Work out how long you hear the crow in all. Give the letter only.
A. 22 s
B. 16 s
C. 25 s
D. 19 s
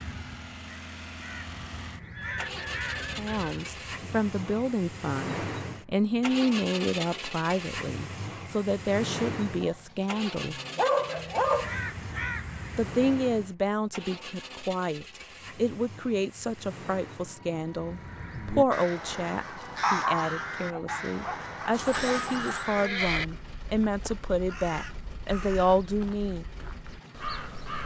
B.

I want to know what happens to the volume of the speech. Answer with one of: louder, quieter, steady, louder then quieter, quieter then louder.
steady.